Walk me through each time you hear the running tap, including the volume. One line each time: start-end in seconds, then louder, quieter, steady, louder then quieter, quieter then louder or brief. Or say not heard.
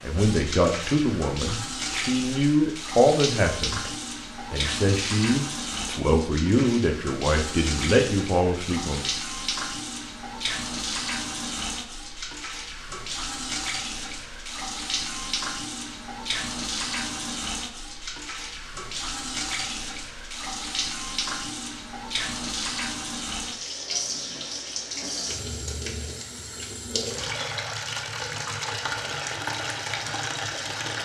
0.0-31.0 steady.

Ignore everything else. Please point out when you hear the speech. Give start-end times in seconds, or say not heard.
0.0-3.9, 4.5-9.1.